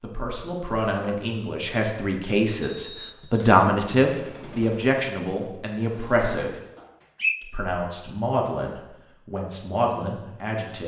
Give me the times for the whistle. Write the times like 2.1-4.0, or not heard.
2.6-3.6, 6.8-7.3.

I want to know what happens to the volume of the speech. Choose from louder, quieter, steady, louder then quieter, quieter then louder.
louder then quieter.